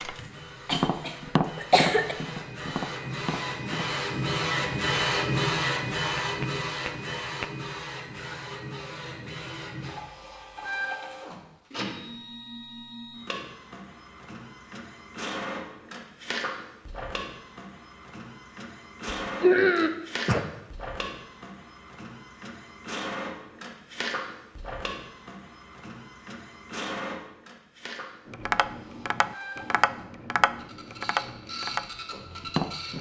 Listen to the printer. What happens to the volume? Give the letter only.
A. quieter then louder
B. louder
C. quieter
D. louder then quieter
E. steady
C.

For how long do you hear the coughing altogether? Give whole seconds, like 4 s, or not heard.
3 s.